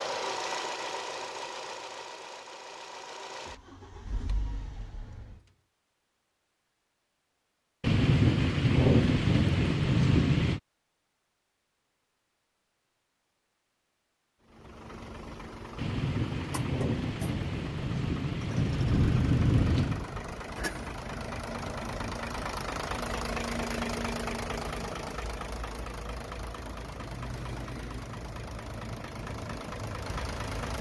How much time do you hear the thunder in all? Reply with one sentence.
You can hear the thunder for 7 seconds altogether.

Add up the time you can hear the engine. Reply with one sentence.
The engine can be heard for 22 seconds in total.